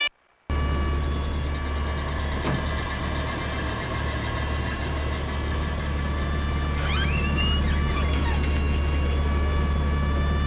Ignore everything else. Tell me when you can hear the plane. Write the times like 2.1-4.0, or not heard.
0.0-10.4.